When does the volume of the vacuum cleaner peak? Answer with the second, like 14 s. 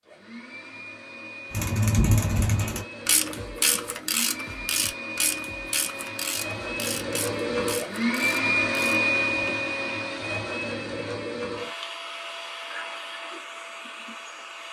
9 s.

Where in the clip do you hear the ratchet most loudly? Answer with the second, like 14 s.
2 s.